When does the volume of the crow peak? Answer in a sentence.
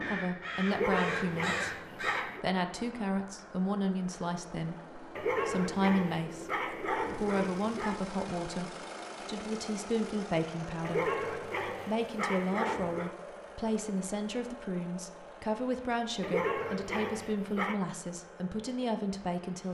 The volume of the crow peaks at 2 seconds.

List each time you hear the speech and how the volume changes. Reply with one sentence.
The speech can be heard from 0.1 to 19.6 s, at a steady volume.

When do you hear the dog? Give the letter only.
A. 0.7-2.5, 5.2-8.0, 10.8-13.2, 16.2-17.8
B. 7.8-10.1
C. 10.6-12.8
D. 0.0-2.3
A.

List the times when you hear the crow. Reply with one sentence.
You can hear the crow from 0.0 to 2.3 s.